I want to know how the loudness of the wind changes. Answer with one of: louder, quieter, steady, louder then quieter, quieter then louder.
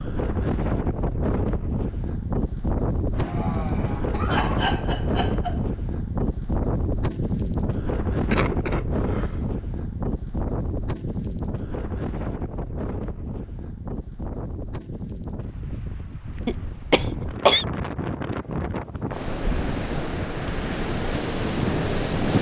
quieter then louder.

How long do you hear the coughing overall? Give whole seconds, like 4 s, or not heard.
5 s.